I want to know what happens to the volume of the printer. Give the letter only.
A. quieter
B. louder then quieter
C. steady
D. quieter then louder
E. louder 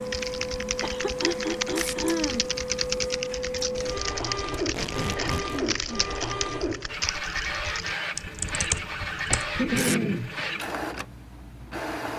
C.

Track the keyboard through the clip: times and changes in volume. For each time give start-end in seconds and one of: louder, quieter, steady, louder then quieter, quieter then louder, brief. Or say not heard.
0.1-9.8 steady.